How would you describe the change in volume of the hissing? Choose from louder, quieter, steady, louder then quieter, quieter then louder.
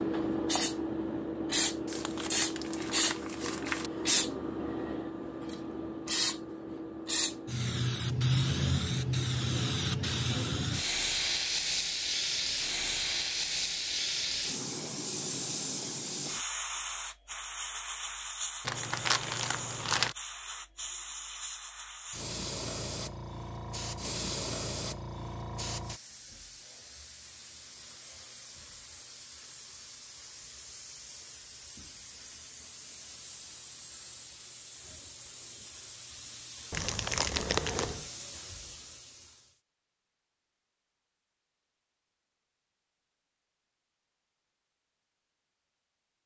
quieter.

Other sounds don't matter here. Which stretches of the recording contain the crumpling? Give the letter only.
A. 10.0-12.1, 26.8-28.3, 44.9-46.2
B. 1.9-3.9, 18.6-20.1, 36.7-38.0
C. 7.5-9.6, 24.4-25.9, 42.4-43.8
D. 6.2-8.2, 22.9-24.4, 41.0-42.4
B.